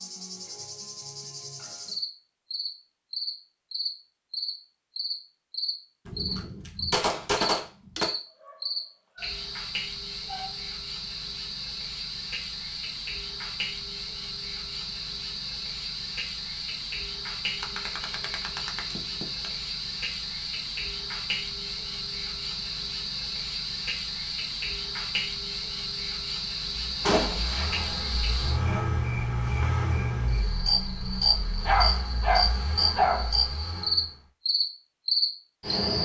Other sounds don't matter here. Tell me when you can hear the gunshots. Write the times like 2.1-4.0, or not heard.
6.0-8.1, 17.6-19.5, 27.0-28.8.